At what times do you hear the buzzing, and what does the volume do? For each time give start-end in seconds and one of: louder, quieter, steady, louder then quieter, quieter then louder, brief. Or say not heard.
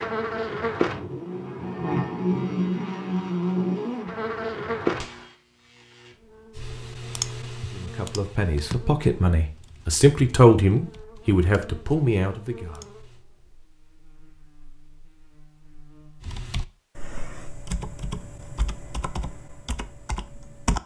0.0-16.3 quieter.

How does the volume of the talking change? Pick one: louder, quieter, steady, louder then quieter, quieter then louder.
louder then quieter.